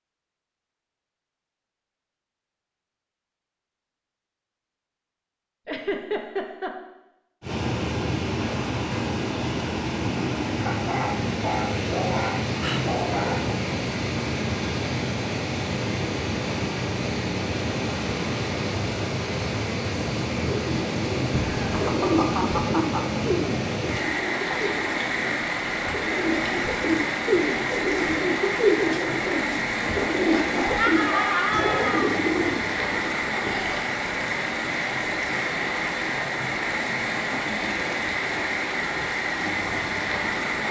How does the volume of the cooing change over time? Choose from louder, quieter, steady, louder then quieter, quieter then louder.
quieter then louder.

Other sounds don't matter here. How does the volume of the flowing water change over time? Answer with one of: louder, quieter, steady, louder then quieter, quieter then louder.
steady.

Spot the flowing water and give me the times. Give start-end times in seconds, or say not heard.
7.4-40.6.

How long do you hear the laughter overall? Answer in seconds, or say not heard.
4 s.